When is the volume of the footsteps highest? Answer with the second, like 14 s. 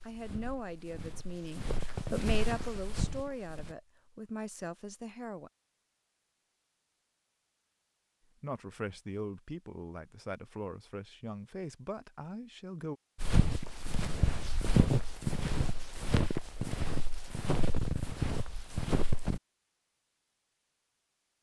15 s.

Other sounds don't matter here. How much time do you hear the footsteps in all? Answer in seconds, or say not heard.
10 s.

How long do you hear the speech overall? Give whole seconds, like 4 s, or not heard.
10 s.